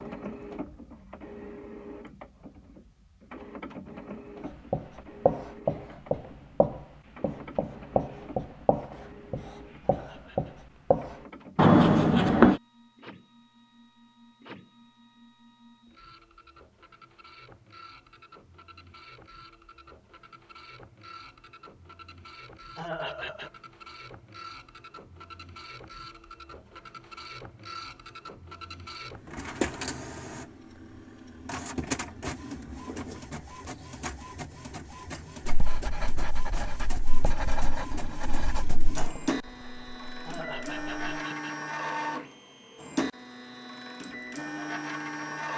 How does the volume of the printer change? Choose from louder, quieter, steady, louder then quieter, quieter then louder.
quieter then louder.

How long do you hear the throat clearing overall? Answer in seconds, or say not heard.
3 s.